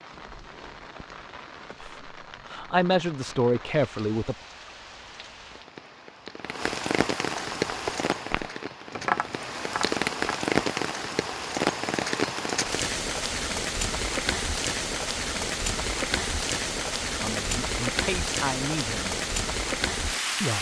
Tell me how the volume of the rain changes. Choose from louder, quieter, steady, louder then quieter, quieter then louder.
louder.